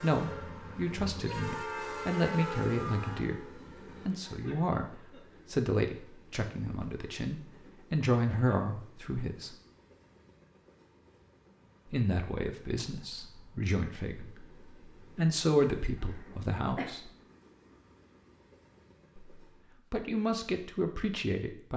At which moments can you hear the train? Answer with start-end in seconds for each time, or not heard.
0.0-19.8.